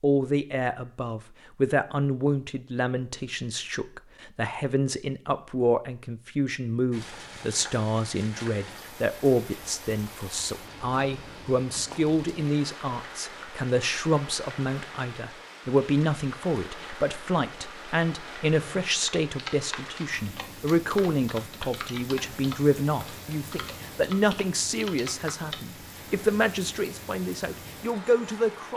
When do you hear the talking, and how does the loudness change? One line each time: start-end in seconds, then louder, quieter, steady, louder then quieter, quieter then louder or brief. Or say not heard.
0.0-28.7 steady.